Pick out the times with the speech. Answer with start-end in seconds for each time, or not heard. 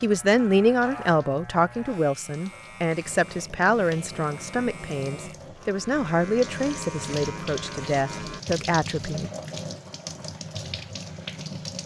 0.0-9.3.